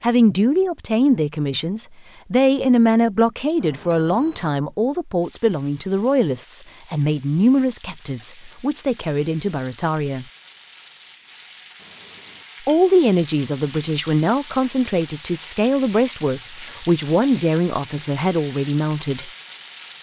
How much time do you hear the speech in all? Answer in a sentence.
You can hear the speech for 17 seconds altogether.